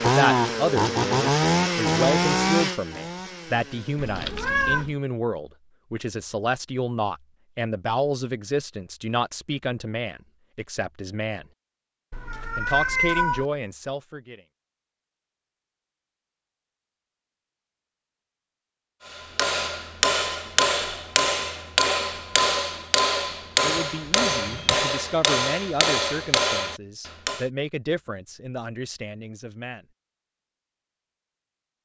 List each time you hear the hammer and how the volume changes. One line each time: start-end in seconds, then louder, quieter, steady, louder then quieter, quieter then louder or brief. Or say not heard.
19.1-27.4 steady.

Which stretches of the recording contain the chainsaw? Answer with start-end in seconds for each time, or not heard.
0.0-4.0.